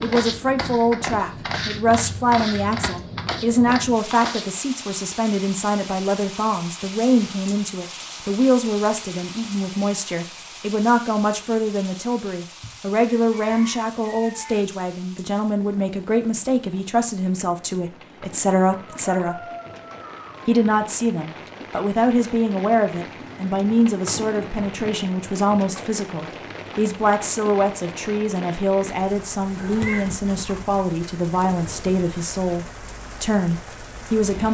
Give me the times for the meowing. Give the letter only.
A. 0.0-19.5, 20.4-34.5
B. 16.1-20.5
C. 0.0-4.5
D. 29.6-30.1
D.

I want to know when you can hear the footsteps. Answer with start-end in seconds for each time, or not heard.
0.0-4.5.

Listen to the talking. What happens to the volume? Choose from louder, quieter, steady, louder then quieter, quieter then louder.
steady.